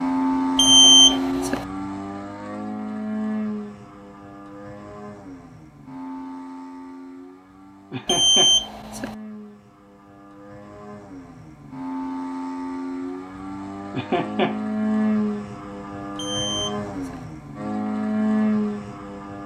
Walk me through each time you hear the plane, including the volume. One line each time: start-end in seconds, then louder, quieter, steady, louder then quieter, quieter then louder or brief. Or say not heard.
0.0-19.4 quieter then louder.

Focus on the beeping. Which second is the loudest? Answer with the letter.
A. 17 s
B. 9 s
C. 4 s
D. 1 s
D.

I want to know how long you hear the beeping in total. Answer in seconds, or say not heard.
3 s.